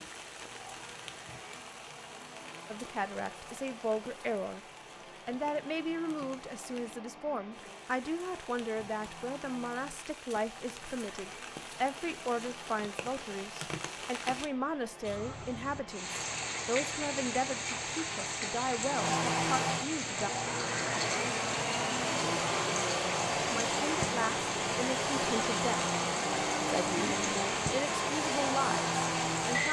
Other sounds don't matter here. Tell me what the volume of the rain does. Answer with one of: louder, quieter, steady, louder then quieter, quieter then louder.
louder.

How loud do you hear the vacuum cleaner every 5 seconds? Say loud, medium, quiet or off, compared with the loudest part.
quiet, quiet, quiet, loud, loud, loud.